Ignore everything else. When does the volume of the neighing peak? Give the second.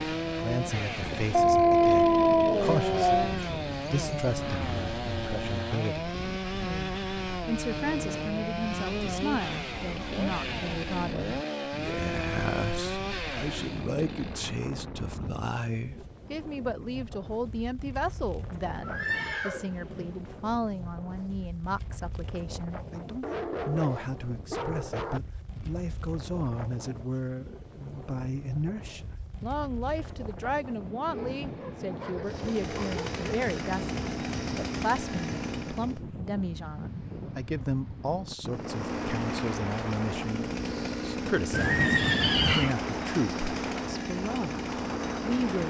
42 s.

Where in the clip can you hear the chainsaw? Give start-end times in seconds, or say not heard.
0.0-14.6, 32.2-36.0, 38.5-45.6.